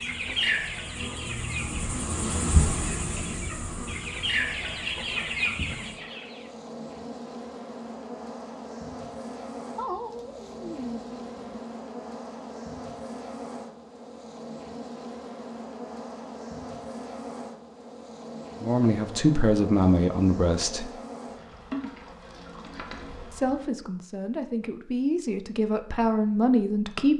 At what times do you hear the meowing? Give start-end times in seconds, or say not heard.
9.8-11.7.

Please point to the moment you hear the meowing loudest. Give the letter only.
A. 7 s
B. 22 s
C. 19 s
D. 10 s
D.